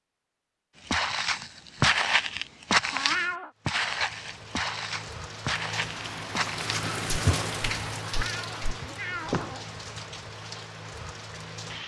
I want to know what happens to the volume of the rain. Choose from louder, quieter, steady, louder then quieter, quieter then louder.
louder then quieter.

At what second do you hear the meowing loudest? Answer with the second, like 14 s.
3 s.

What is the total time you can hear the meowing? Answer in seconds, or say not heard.
2 s.